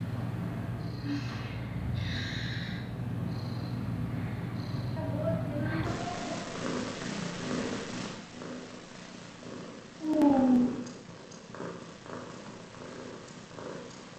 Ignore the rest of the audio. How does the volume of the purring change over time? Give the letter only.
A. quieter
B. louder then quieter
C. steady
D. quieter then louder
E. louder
A.